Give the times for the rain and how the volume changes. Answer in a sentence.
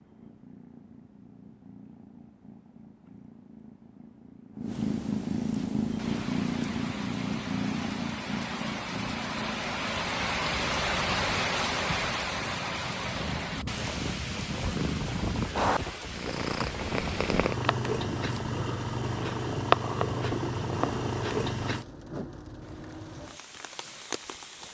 The rain can be heard from 5.8 to 24.7 s, getting louder then quieter.